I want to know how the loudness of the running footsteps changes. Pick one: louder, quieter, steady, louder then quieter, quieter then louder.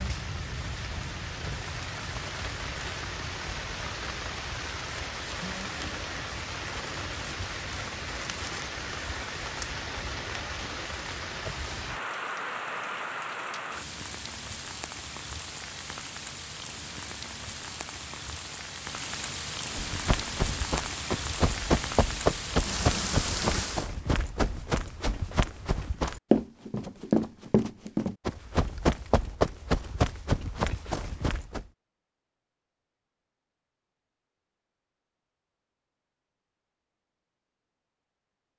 steady.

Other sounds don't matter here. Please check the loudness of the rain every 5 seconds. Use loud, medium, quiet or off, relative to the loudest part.
loud, loud, loud, medium, loud, off, off, off.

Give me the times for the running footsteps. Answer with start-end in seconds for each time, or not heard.
19.8-31.6.